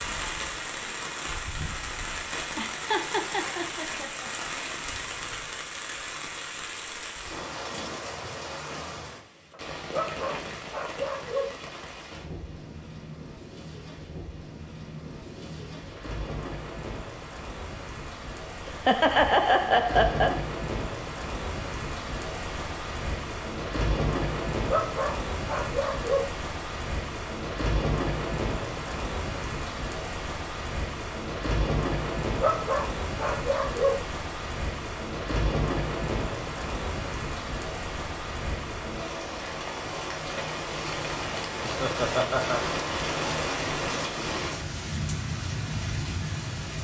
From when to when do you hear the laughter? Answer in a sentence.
The laughter can be heard from 2.5 to 4.3 s, from 18.6 to 20.4 s and from 41.6 to 42.6 s.